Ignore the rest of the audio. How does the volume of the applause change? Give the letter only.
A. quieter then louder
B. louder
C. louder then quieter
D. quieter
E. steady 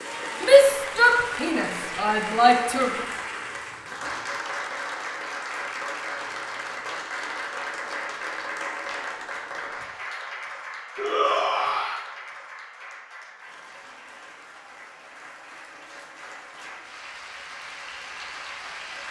D.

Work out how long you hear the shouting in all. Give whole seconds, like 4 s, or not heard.
4 s.